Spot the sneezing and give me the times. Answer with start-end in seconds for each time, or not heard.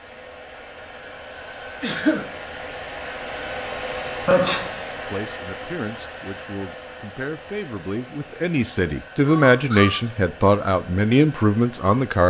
1.8-2.2, 4.2-4.8, 9.2-10.1.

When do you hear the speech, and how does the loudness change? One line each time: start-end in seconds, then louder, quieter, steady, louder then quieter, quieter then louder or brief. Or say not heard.
5.0-12.2 louder.